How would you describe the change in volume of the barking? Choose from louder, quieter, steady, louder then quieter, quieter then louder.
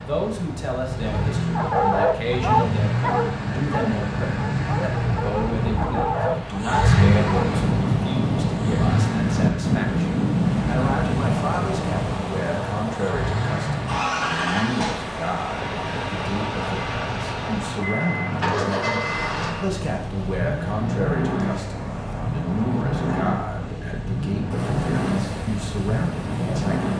quieter then louder.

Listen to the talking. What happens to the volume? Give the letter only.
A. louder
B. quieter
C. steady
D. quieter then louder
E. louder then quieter
C.